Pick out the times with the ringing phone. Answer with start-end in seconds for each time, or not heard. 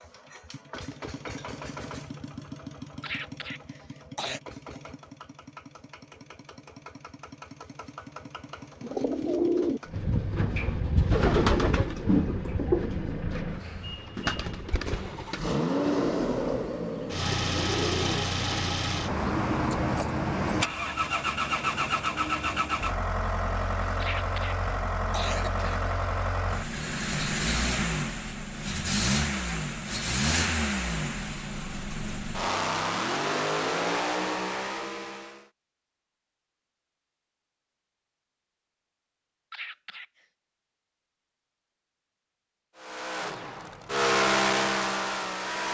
not heard.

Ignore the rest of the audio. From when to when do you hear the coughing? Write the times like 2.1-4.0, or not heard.
3.0-4.4, 24.0-25.8, 39.5-40.2.